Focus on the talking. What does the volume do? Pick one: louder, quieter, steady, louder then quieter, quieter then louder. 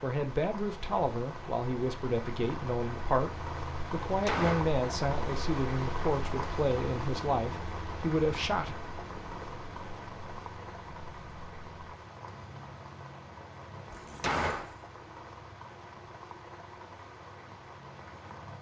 steady.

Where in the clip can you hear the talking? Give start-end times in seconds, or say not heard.
0.0-8.8.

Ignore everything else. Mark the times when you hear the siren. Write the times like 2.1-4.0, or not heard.
not heard.